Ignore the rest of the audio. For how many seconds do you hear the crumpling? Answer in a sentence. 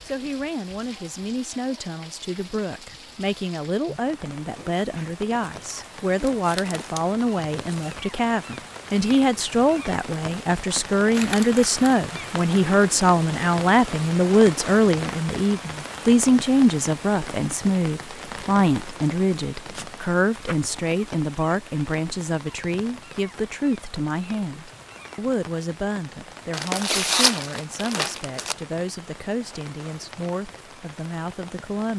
The crumpling can be heard for 6 seconds in total.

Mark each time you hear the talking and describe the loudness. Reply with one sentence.
The talking can be heard from 0.1 to 31.9 s, getting louder then quieter.